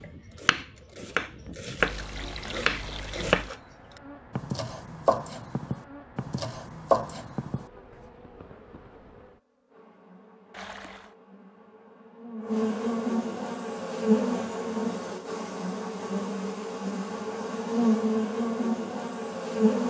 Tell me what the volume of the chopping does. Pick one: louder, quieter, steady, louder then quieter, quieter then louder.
quieter then louder.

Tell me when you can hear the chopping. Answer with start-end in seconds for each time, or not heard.
0.0-3.5, 4.3-7.7.